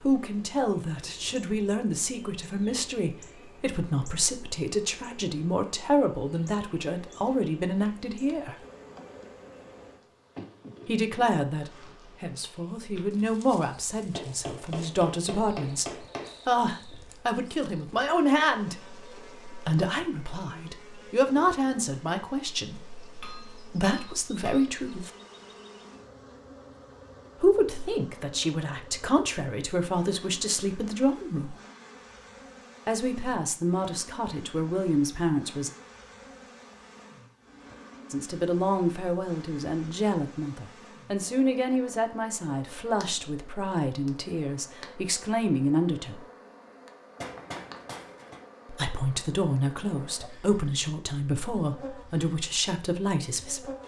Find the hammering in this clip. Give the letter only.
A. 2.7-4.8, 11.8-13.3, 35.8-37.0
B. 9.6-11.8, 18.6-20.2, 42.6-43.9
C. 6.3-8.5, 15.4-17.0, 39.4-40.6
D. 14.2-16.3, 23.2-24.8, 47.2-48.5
D.